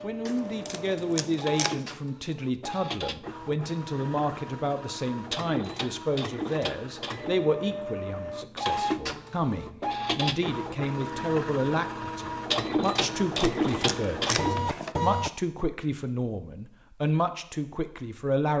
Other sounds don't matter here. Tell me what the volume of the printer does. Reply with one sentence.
The loudness of the printer goes up.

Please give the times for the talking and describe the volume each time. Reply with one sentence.
You can hear the talking from 0.0 to 18.5 s, at a steady volume.